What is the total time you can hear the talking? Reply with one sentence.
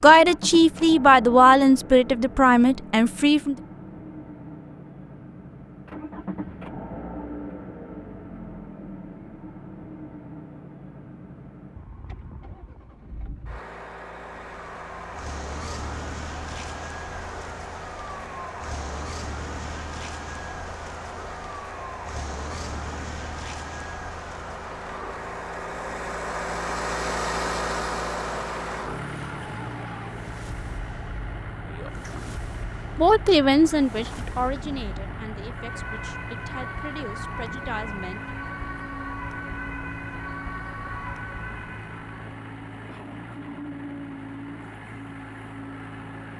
The talking can be heard for 10 seconds in total.